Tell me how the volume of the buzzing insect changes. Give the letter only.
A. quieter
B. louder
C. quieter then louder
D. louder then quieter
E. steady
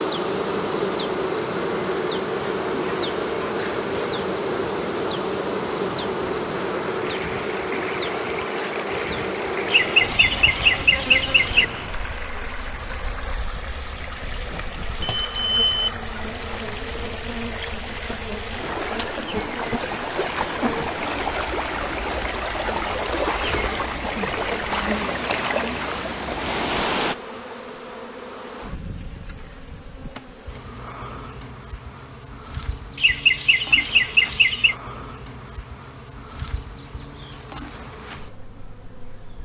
A.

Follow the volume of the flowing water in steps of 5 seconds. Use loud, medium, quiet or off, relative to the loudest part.
medium, medium, medium, medium, loud, loud, off, off.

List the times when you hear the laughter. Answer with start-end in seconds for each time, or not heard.
9.7-11.7, 33.0-34.8.